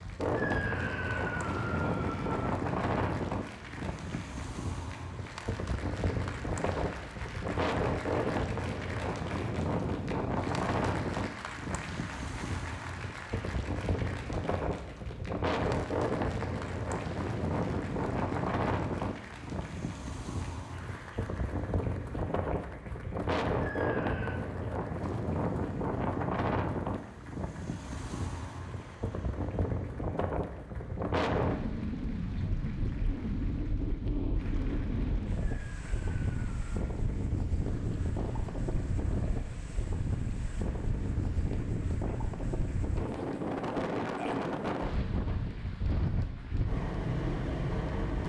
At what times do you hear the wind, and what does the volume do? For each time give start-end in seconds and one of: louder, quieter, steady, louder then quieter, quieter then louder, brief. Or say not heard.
0.0-48.2 steady.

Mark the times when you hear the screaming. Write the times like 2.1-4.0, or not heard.
0.3-2.5, 23.6-24.4, 35.6-36.9.